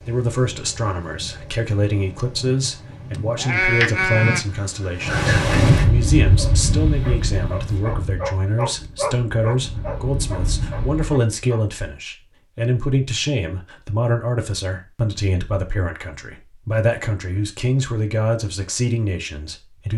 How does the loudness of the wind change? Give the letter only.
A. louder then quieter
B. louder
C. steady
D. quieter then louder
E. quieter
A.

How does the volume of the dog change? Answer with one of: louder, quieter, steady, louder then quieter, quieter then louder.
louder then quieter.